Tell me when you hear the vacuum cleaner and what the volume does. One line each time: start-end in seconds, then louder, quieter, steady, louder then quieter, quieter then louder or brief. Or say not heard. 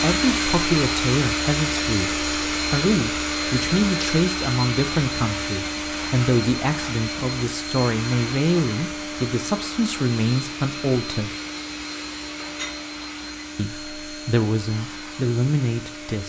0.0-16.2 quieter.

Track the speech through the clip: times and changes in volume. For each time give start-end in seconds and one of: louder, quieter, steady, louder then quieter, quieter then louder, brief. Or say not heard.
0.0-11.3 steady
13.6-16.2 brief.